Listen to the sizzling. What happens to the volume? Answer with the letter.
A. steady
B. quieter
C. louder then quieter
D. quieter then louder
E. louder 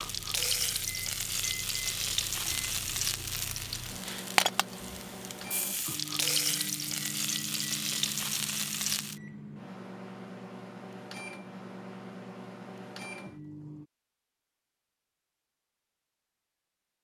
A.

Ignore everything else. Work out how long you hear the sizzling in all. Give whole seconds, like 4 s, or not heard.
9 s.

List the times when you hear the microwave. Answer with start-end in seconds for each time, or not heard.
0.0-13.9.